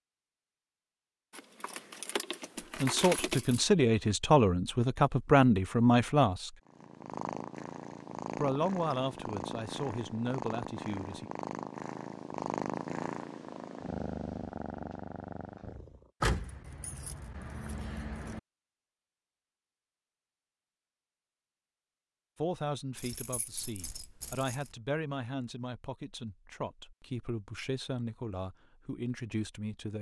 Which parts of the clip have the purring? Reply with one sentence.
You can hear the purring from 6.7 to 16.1 s.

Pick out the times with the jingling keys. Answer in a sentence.
The jingling keys can be heard from 1.3 to 3.6 s, from 16.2 to 18.4 s and from 22.9 to 24.7 s.